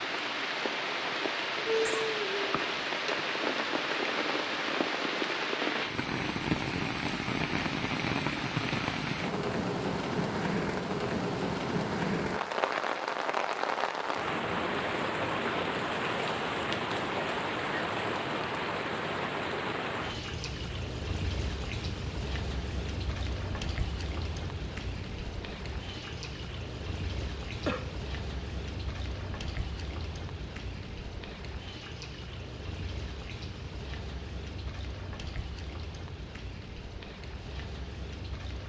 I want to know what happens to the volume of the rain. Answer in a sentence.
The loudness of the rain goes down.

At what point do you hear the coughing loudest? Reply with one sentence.
The loudest moment of the coughing is at 2 seconds.